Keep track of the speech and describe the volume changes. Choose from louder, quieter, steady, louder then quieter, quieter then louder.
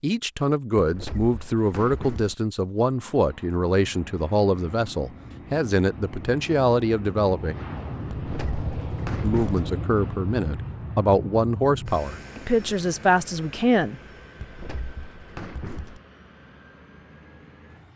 steady.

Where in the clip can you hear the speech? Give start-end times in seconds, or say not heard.
0.0-7.5, 9.2-14.0.